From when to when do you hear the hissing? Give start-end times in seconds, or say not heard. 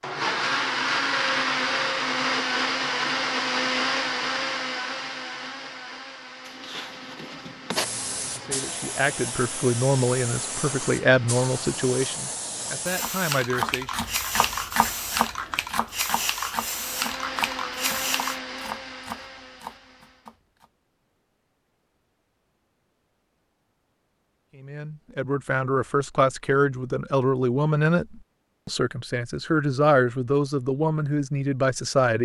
6.5-18.4.